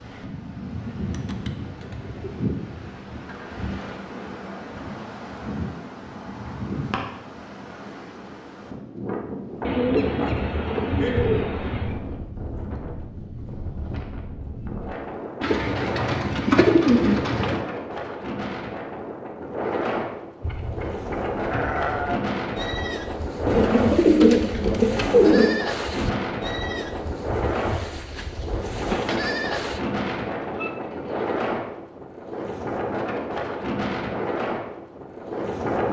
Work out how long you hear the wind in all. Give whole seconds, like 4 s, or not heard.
36 s.